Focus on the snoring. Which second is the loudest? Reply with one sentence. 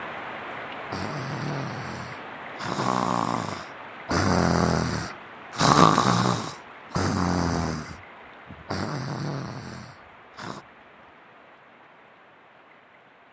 The volume of the snoring peaks at 6 seconds.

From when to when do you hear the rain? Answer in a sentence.
You can hear the rain from 0.0 to 13.2 s.